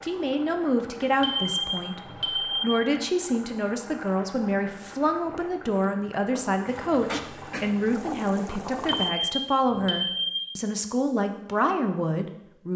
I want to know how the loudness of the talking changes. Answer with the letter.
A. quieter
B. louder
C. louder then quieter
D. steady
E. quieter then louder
D.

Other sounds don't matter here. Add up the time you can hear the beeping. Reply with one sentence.
You can hear the beeping for 3 seconds altogether.